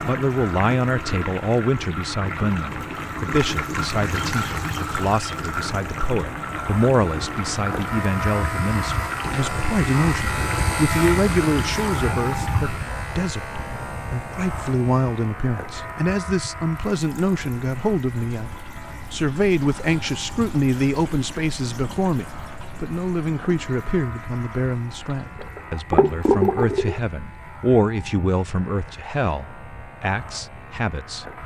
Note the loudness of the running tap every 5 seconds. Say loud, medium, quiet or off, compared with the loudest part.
medium, medium, medium, quiet, quiet, loud, off.